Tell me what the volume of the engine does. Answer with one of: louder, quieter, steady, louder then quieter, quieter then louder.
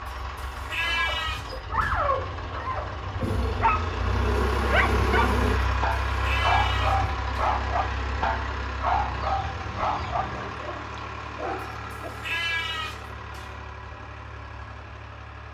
louder then quieter.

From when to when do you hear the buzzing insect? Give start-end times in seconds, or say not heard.
3.2-5.6.